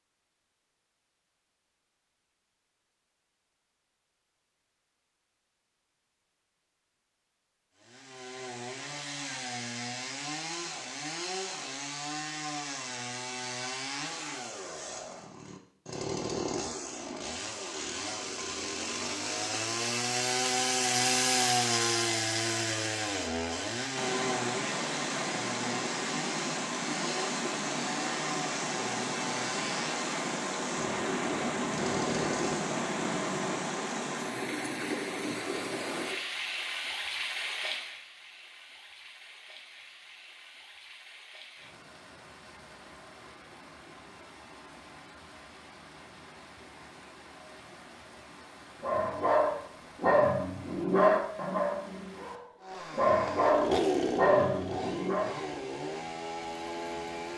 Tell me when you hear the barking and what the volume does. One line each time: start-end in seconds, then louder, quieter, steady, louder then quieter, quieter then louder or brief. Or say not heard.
48.8-55.3 quieter then louder.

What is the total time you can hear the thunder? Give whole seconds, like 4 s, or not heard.
3 s.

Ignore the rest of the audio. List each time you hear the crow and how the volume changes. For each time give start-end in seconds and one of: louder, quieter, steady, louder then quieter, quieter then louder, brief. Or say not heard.
not heard.